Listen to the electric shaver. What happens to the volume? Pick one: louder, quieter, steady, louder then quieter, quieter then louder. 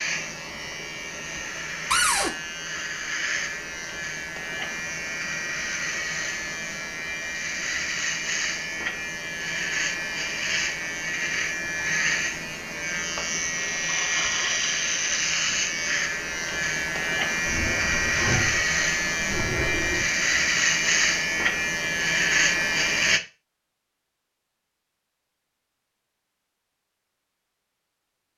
louder.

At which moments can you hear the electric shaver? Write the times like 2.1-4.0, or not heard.
0.0-23.2.